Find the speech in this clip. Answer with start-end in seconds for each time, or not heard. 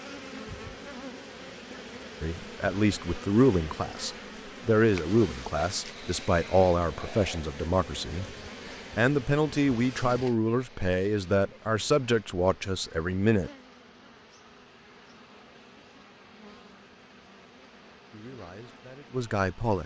2.2-13.5, 18.1-19.8.